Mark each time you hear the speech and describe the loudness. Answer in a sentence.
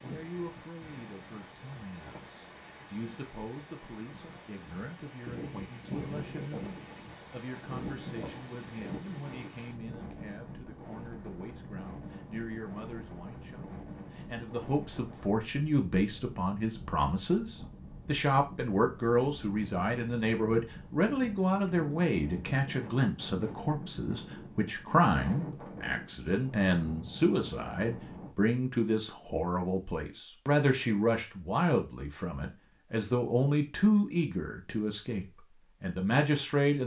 The speech can be heard from 0.0 to 36.8 s, getting louder.